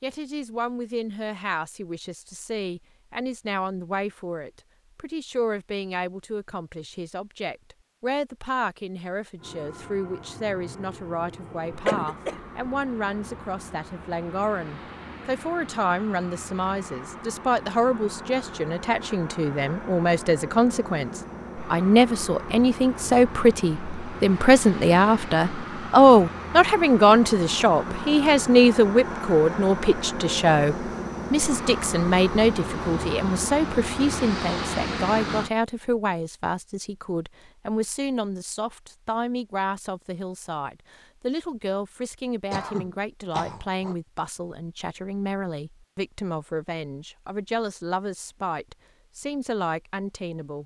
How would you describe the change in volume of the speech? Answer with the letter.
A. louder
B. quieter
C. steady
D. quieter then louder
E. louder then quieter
E.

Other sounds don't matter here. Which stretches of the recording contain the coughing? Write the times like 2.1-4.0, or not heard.
11.8-12.4, 42.5-44.0.